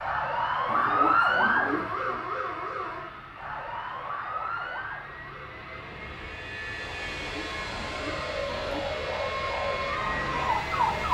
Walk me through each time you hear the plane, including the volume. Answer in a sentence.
The plane can be heard from 0.0 to 11.1 s, getting louder.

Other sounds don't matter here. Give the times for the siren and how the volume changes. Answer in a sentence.
You can hear the siren from 0.0 to 11.1 s, getting quieter then louder.